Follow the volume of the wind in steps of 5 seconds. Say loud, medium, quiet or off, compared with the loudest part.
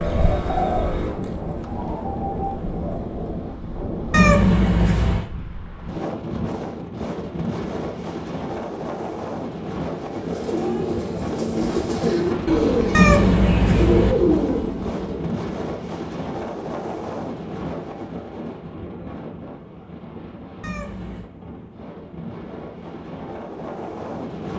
loud, loud, loud, loud, medium.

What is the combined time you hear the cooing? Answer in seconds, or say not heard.
9 s.